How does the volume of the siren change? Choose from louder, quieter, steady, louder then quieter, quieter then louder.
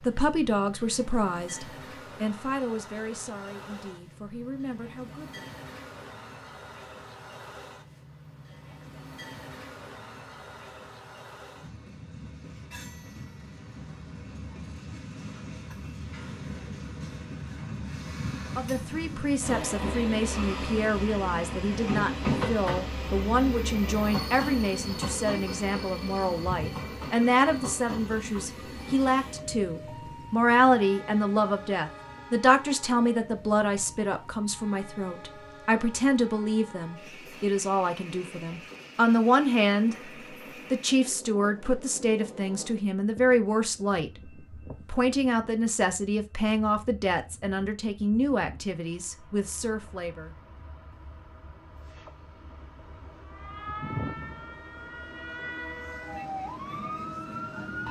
quieter then louder.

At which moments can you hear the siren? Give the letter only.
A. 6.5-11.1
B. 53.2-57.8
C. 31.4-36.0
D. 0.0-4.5
B.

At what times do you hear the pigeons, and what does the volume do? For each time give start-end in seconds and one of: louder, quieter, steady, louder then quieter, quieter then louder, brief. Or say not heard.
not heard.